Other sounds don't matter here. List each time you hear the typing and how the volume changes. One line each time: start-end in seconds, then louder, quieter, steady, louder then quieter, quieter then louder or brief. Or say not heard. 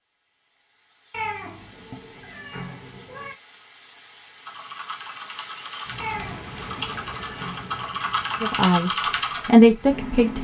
4.5-10.4 louder.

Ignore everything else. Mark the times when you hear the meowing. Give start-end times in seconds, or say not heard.
1.1-3.4, 6.0-7.9.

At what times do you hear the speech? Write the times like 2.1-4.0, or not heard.
8.4-10.4.